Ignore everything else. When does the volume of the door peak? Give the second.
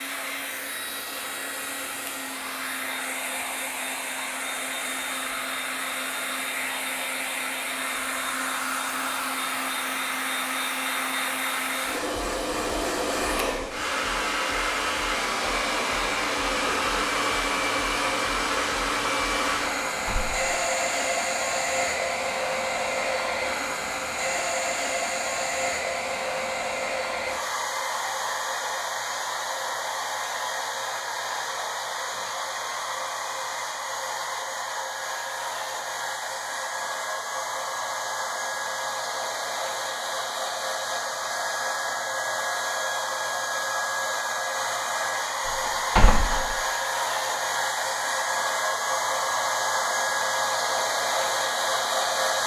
46 s.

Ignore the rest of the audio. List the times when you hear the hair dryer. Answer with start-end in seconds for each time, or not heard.
0.0-52.4.